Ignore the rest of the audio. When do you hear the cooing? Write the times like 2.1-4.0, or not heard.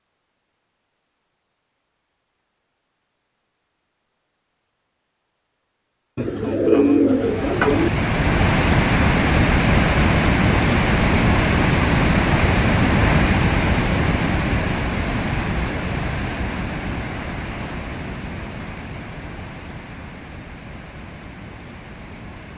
6.2-7.9.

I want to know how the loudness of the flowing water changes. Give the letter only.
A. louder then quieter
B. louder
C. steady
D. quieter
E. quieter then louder
D.